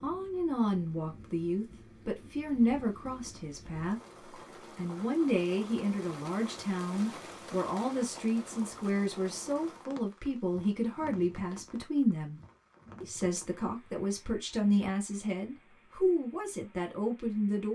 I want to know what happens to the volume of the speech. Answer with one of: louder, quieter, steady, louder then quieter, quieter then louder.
steady.